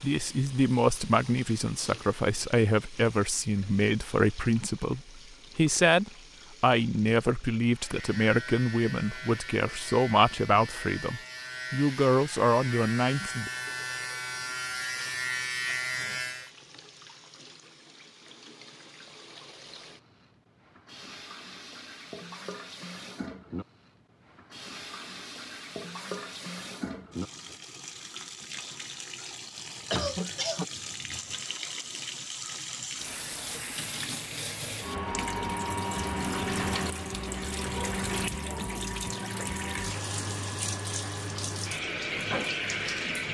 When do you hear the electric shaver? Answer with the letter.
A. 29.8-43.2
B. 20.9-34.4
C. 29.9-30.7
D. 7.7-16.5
D.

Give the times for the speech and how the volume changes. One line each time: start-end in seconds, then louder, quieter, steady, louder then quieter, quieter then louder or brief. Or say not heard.
0.0-13.5 steady.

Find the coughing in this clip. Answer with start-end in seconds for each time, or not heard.
29.9-30.7.